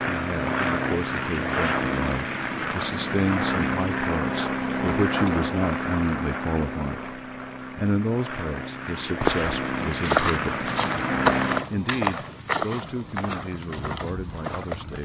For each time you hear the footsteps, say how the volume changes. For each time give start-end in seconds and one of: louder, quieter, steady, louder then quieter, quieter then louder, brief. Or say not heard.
9.2-15.0 quieter.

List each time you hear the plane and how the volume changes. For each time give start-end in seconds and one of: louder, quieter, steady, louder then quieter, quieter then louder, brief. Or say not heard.
0.0-11.7 quieter then louder.